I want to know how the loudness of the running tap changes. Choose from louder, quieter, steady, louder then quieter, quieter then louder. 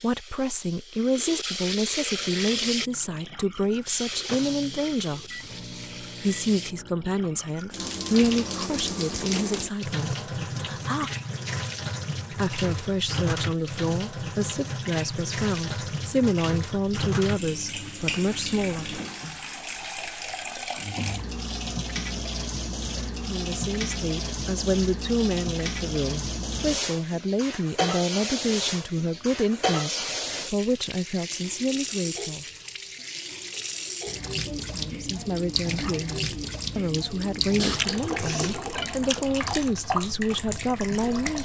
steady.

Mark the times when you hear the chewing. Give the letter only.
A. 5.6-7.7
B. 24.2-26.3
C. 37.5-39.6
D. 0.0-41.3
C.